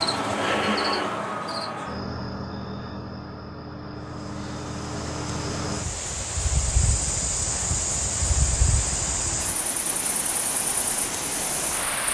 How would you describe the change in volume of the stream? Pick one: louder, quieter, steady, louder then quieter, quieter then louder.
louder.